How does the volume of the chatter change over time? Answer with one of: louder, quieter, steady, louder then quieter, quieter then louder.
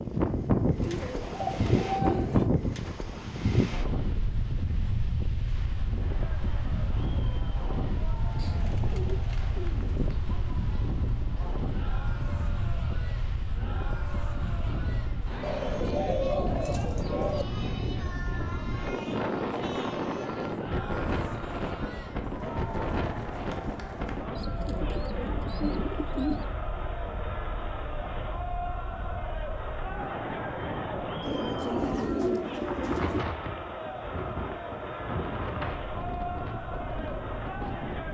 louder.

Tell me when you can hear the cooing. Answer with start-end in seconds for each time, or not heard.
0.8-2.5, 8.3-10.2, 15.4-17.4, 24.4-26.5, 31.2-33.2.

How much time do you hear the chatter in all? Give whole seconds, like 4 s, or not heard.
32 s.